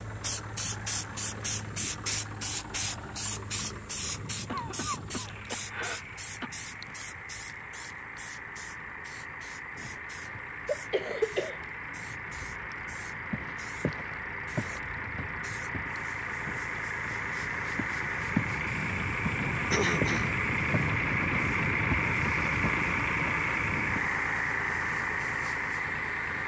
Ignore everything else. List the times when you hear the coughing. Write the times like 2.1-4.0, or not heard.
4.5-6.5, 9.8-11.6, 19.7-20.3.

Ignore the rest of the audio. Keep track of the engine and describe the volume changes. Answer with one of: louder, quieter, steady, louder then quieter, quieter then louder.
louder.